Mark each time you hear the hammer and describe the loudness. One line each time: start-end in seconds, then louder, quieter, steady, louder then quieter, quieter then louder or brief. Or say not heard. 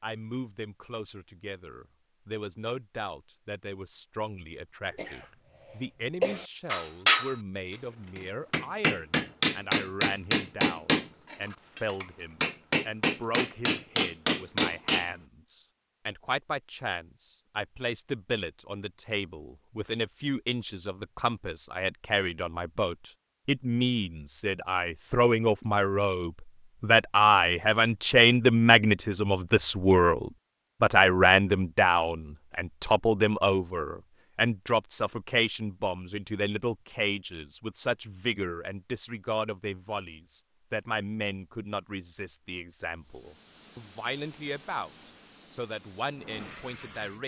6.7-15.1 steady.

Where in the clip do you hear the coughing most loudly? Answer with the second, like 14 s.
6 s.